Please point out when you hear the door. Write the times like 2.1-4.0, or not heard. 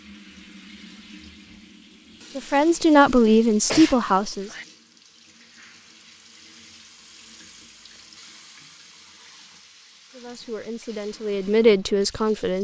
not heard.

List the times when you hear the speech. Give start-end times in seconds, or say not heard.
2.4-4.5, 10.2-12.5.